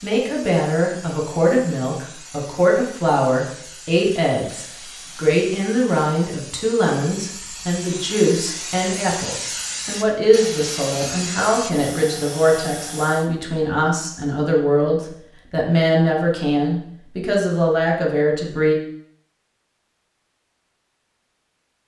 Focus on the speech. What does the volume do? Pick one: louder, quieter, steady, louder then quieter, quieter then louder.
steady.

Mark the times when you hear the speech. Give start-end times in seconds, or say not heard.
0.0-18.8.